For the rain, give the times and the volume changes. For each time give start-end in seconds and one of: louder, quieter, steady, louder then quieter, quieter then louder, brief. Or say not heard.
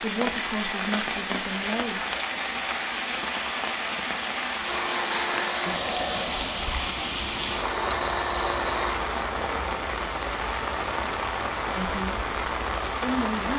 0.0-13.5 steady.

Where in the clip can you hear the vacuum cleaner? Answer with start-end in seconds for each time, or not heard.
4.6-9.0.